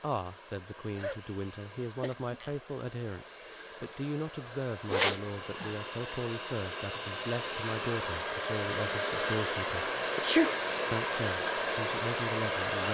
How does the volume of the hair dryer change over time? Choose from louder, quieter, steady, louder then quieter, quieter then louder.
louder.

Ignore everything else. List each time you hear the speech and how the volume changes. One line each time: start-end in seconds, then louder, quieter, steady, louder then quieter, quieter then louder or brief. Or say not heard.
0.0-9.9 steady
10.9-12.8 brief.